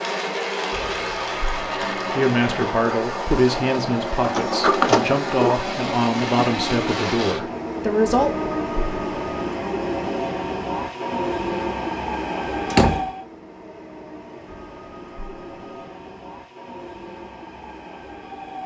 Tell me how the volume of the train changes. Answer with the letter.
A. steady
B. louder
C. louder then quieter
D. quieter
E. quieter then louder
D.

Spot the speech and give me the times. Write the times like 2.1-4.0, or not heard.
2.1-8.3.